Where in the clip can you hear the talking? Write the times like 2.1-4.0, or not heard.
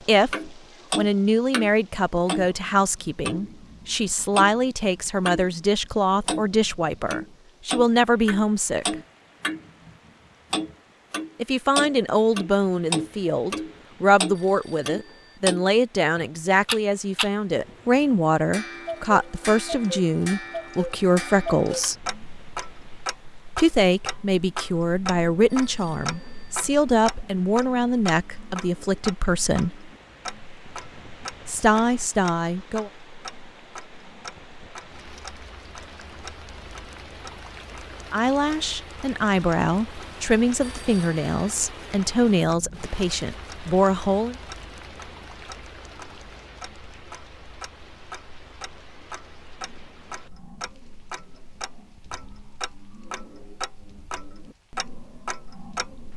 0.1-8.9, 11.3-22.1, 23.6-29.8, 31.4-32.9, 38.1-44.4.